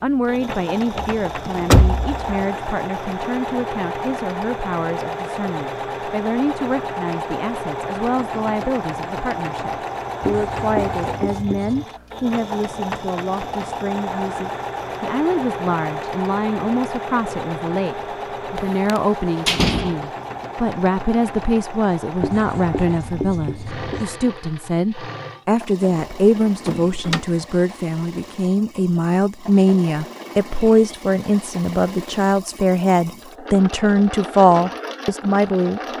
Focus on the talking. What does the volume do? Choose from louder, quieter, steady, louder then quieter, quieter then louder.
louder.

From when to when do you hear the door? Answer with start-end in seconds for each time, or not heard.
0.9-2.5, 18.6-19.9, 26.0-27.2.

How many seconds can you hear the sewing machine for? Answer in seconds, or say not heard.
36 s.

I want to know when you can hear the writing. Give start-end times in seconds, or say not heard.
10.2-11.8, 22.2-24.1.